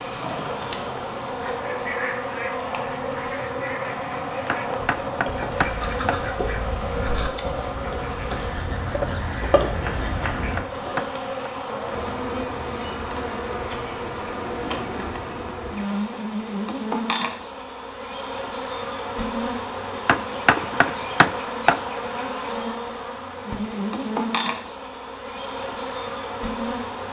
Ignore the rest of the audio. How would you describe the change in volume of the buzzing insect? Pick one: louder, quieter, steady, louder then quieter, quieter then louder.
steady.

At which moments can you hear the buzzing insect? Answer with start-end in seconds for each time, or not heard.
0.0-27.0.